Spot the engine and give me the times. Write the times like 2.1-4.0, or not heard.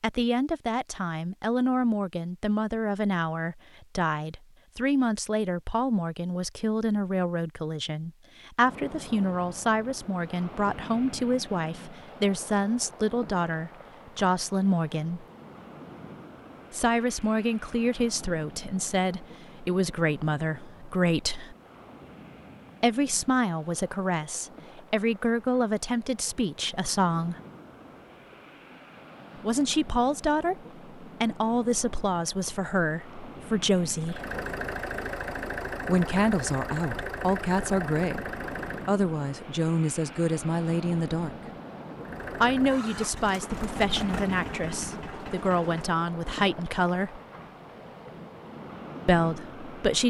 34.0-39.0, 42.0-46.0.